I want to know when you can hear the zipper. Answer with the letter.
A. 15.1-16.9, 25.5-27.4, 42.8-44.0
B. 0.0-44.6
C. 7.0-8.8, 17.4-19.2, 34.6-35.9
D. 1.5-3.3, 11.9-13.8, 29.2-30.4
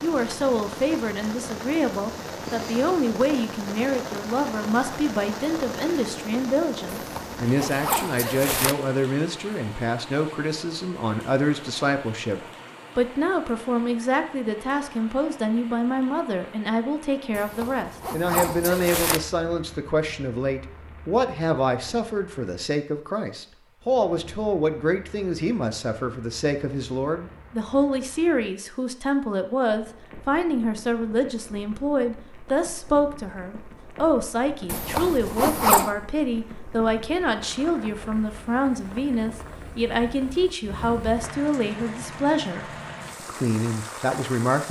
C.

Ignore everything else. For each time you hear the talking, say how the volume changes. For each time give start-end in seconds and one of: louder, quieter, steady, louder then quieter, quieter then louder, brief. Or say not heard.
0.0-44.6 steady.